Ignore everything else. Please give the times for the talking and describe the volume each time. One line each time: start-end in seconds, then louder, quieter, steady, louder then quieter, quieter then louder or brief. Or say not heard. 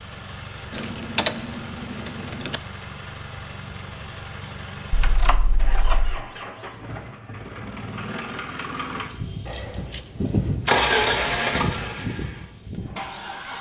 not heard.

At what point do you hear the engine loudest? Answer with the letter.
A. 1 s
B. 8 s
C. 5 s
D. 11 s
D.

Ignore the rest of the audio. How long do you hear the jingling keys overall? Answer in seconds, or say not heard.
4 s.